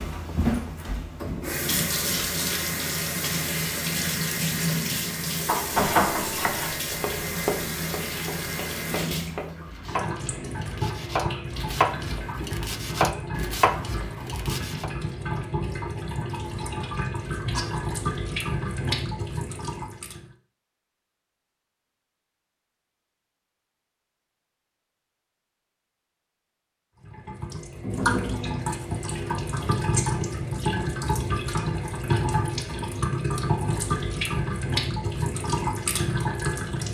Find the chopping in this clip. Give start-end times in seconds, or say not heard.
5.7-14.9.